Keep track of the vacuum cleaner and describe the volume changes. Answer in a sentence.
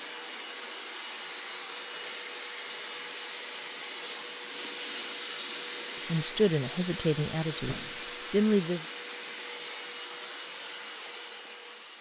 The volume of the vacuum cleaner stays about the same.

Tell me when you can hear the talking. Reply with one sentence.
The talking can be heard from 6.0 to 8.8 s.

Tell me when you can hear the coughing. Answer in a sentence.
The coughing can't be heard in this clip.